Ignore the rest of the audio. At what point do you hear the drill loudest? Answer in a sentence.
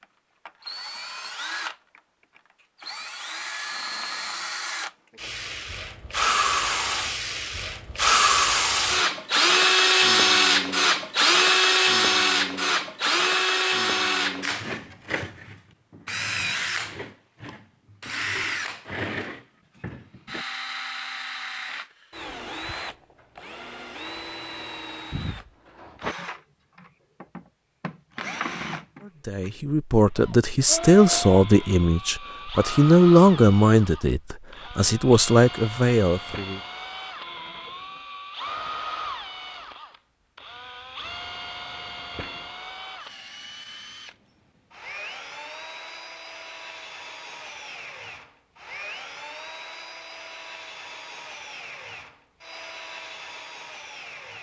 The volume of the drill peaks at 10 seconds.